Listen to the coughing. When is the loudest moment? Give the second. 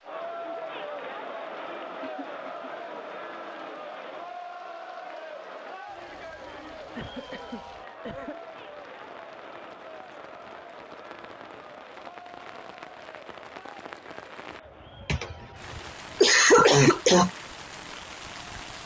17 s.